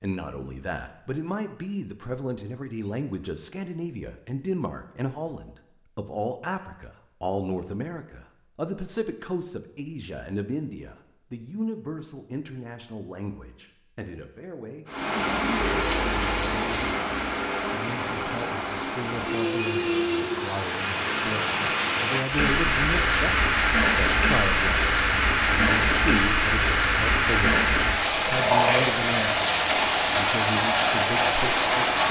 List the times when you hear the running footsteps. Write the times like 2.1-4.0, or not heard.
not heard.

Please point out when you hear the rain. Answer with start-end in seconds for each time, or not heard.
14.8-32.0.